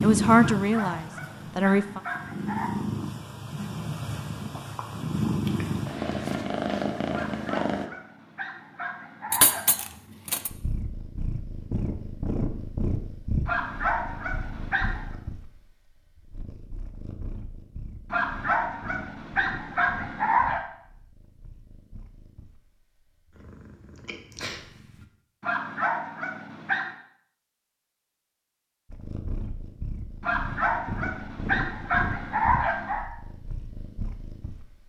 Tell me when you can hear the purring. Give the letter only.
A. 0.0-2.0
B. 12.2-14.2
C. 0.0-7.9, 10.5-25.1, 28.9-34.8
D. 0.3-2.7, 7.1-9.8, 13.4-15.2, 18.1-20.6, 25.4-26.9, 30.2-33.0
C.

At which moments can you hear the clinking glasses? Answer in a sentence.
You can hear the clinking glasses from 9.3 to 10.5 s.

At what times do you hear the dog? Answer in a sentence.
You can hear the dog from 0.3 to 2.7 s, from 7.1 to 9.8 s, from 13.4 to 15.2 s, from 18.1 to 20.6 s, from 25.4 to 26.9 s and from 30.2 to 33.0 s.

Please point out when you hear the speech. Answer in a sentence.
The speech can be heard from 0.0 to 2.0 s.